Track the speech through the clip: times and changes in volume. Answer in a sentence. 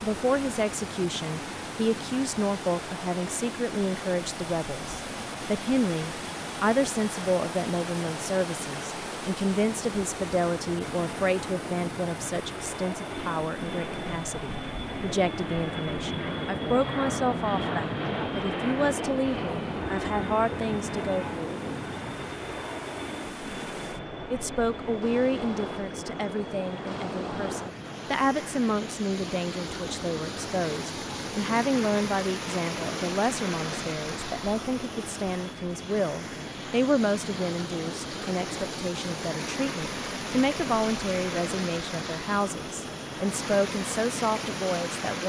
You can hear the speech from 0.0 to 21.6 s, at a steady volume; and from 24.3 to 45.2 s, at a steady volume.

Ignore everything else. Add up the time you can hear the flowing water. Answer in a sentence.
You can hear the flowing water for 45 seconds altogether.